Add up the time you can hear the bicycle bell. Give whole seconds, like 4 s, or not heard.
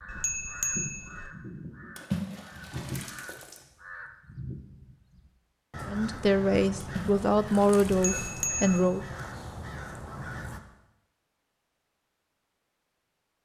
2 s.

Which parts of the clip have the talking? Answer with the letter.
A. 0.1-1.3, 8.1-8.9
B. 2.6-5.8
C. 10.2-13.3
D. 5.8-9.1
D.